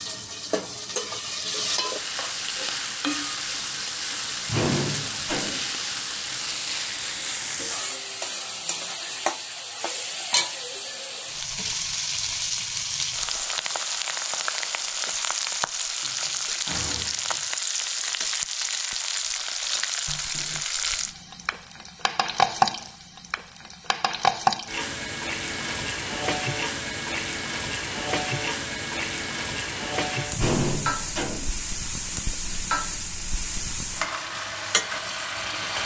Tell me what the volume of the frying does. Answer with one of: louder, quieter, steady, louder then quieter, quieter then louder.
steady.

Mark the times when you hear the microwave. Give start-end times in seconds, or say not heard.
not heard.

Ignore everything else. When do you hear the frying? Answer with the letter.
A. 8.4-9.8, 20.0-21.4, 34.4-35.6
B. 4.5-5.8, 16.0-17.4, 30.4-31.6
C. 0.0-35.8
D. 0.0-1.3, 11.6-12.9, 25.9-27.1
C.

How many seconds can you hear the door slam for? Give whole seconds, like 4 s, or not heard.
4 s.